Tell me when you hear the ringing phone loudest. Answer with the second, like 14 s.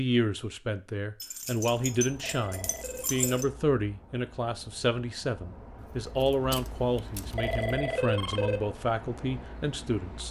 8 s.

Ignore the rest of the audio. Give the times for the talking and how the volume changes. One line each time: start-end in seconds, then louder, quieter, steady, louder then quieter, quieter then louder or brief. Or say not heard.
0.0-10.2 steady.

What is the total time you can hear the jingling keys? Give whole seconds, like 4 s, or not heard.
4 s.